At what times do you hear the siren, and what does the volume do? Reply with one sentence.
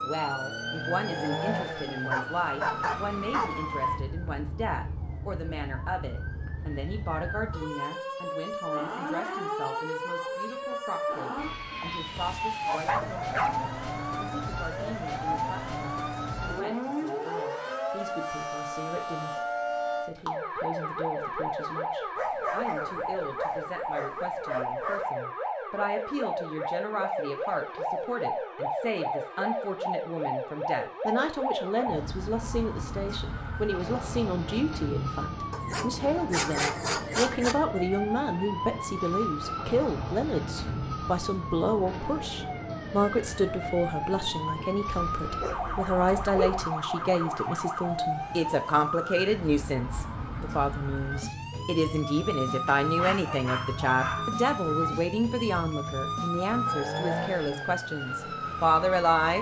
The siren can be heard from 0.0 to 59.3 s, at a steady volume.